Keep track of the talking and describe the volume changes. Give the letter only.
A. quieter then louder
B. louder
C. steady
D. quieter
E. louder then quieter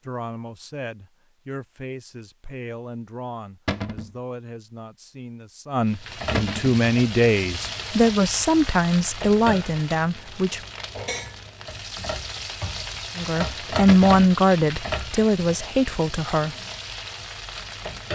B.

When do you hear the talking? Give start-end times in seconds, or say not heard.
0.0-10.6, 13.2-16.6.